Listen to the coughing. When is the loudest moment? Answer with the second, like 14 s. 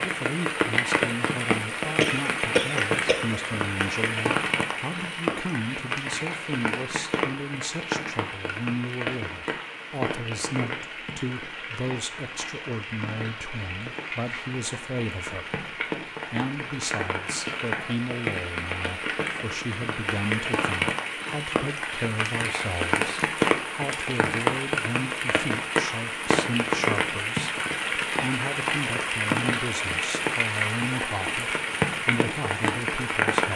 2 s.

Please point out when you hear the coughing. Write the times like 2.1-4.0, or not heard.
2.0-3.5.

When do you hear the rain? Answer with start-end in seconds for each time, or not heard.
0.0-33.5.